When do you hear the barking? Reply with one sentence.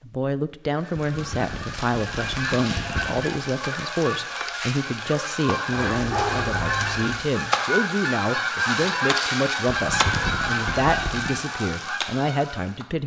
The barking can be heard from 5.7 to 7.2 s.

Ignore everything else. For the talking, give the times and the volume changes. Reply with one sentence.
The talking can be heard from 0.0 to 13.0 s, at a steady volume.